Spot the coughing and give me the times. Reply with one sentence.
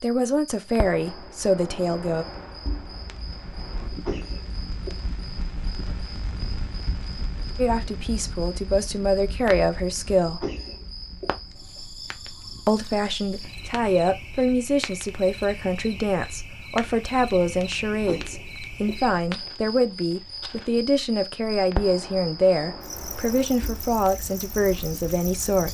You can hear the coughing from 3.9 to 5.0 s, from 10.2 to 11.8 s and from 17.9 to 19.4 s.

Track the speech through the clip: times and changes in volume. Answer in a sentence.
The speech can be heard briefly from 0.0 to 2.2 s; briefly from 7.5 to 10.4 s; and from 12.7 to 25.6 s, at a steady volume.